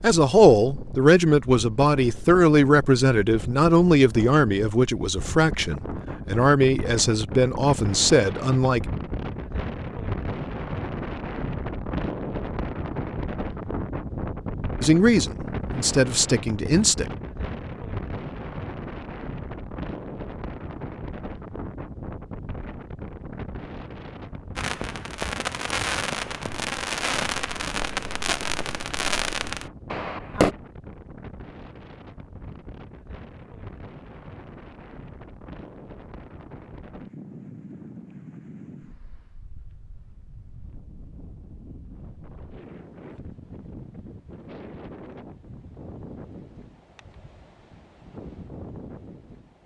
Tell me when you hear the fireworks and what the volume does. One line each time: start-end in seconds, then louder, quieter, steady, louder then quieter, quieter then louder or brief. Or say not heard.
24.6-30.6 steady.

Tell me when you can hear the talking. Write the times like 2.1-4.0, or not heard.
0.0-8.8, 14.8-17.1.